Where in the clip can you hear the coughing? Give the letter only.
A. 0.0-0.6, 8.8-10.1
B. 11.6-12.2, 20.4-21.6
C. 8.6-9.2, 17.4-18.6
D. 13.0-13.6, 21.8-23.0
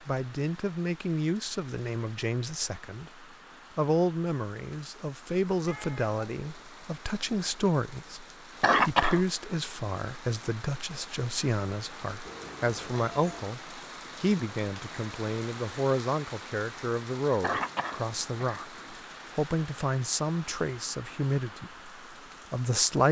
C.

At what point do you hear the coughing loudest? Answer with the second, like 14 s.
9 s.